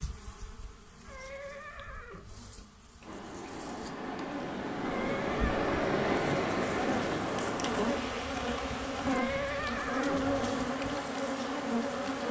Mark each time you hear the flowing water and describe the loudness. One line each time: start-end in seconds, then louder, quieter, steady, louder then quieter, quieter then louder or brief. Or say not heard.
3.0-12.2 louder then quieter.